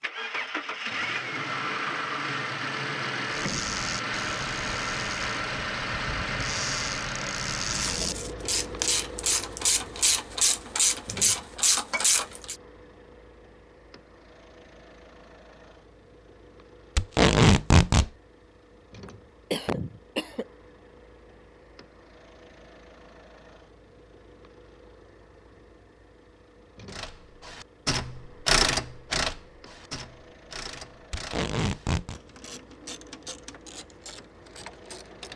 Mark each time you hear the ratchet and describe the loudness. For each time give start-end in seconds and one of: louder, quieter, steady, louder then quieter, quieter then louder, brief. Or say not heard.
3.2-12.6 louder
26.9-35.3 quieter.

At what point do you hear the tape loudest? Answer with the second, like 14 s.
17 s.